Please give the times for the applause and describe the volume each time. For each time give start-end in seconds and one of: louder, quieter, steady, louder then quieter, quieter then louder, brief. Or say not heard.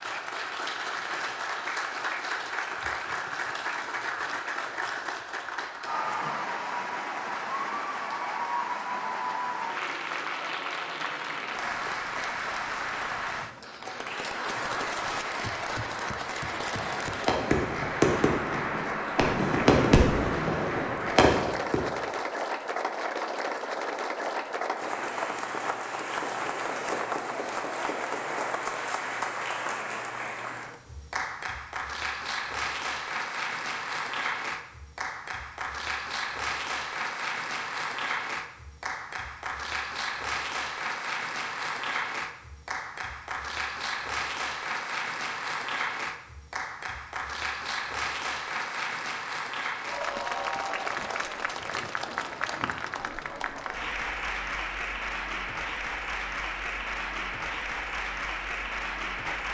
0.0-59.4 steady.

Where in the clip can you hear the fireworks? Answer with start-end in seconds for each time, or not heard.
16.8-22.1.